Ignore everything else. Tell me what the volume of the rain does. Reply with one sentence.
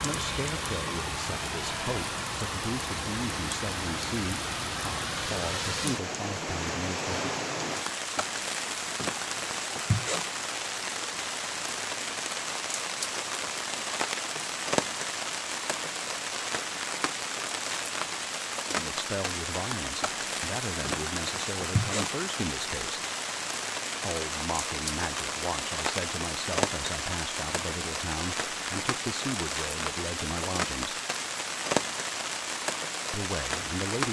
The loudness of the rain stays about the same.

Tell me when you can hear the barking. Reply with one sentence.
The barking can't be heard in this clip.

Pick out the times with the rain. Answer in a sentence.
The rain can be heard from 0.0 to 34.0 s.